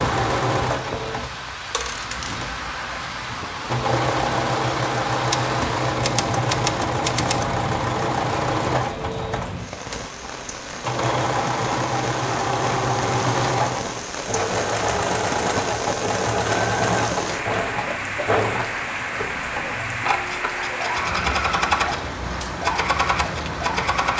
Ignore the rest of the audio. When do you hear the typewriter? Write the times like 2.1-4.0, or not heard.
5.3-7.5.